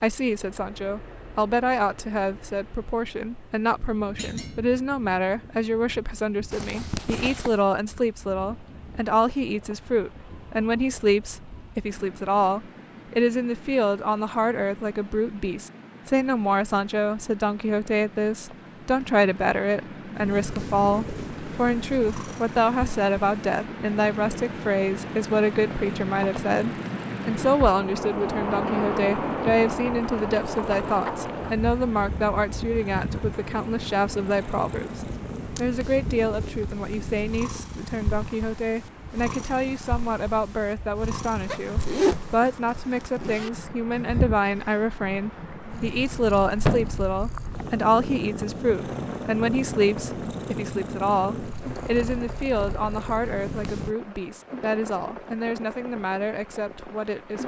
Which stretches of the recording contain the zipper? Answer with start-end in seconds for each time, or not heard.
6.5-7.6, 34.8-35.6, 41.5-43.5.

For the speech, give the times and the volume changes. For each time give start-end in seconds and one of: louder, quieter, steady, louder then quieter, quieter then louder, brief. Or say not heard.
0.0-57.4 steady.